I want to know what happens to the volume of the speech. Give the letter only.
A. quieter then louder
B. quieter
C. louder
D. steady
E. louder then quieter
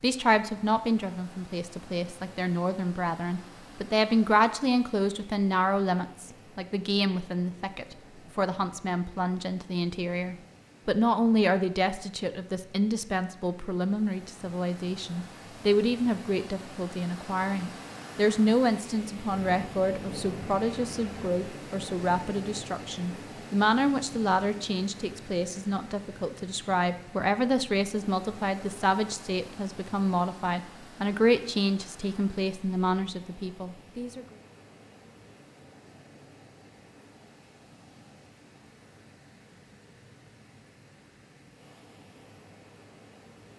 D.